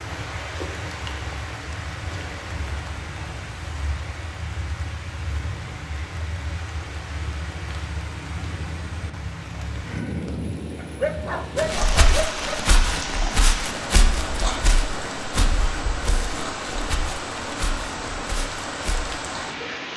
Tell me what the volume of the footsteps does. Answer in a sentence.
The volume of the footsteps goes down.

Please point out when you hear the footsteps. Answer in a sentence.
The footsteps can be heard from 11.6 to 19.2 s.